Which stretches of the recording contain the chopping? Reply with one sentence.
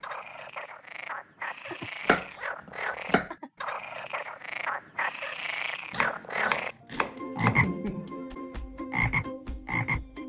The chopping can be heard from 2.0 to 3.3 s and from 5.9 to 7.6 s.